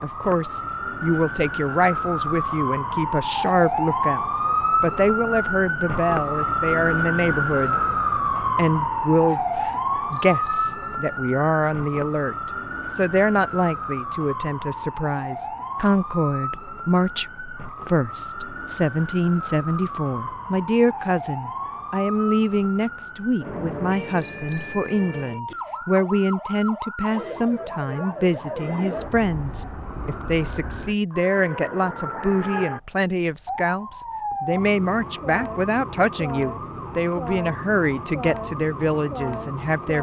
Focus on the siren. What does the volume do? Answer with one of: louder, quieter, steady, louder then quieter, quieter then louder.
quieter.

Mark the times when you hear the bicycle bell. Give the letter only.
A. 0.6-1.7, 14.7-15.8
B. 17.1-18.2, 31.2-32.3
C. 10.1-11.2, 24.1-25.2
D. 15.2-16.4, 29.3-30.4
C.